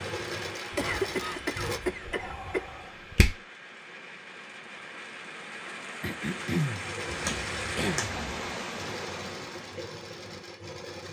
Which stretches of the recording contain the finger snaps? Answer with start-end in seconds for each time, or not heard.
2.0-3.4, 7.0-8.6.